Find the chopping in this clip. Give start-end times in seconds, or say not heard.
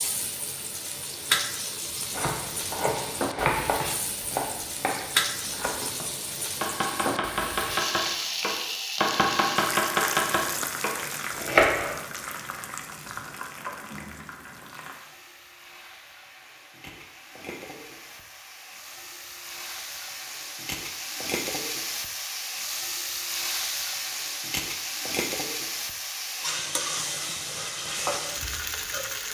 2.1-12.0.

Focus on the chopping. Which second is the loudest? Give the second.
12 s.